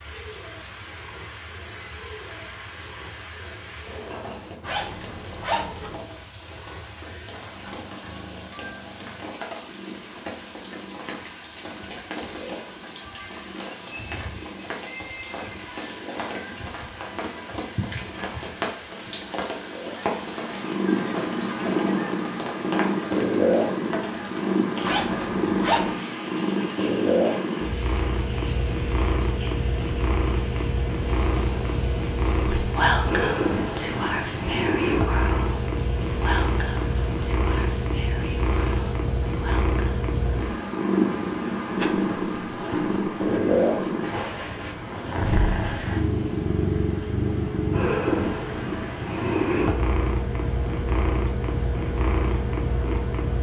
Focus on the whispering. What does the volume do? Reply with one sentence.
The volume of the whispering goes down.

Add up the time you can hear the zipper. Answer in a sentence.
You can hear the zipper for 5 seconds altogether.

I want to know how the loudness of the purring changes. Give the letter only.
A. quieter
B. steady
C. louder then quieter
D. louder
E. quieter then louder
D.